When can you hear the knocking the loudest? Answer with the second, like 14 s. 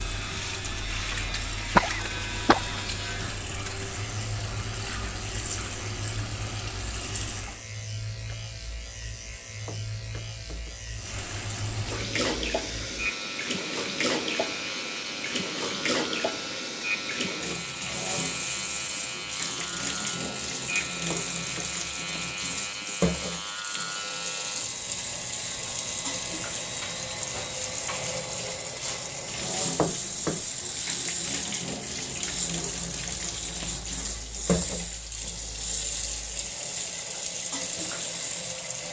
30 s.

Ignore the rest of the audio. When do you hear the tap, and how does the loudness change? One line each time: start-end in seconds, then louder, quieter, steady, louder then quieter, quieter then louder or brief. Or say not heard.
0.0-7.7 steady
10.9-38.8 steady.